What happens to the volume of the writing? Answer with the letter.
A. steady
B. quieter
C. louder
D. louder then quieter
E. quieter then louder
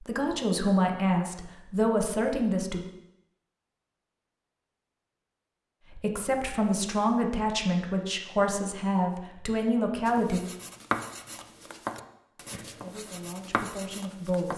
E.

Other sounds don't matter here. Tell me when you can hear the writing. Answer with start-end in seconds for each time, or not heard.
10.1-14.5.